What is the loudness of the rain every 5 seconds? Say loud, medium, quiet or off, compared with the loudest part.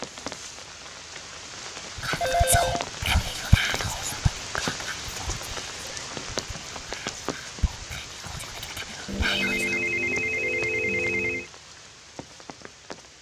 loud, loud, medium.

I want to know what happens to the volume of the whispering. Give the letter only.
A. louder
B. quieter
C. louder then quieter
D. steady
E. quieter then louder
E.